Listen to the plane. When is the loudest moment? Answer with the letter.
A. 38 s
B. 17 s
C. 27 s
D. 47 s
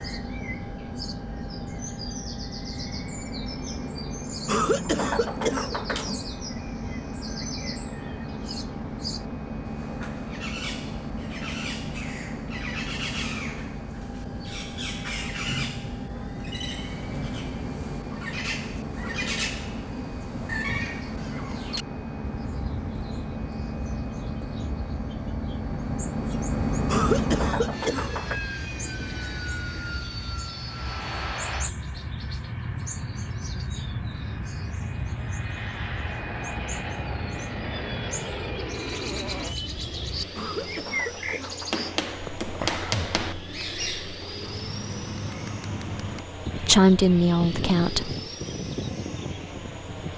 C.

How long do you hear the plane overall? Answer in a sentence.
You can hear the plane for 50 seconds altogether.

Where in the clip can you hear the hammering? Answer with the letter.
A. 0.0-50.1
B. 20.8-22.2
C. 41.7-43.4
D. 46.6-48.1
C.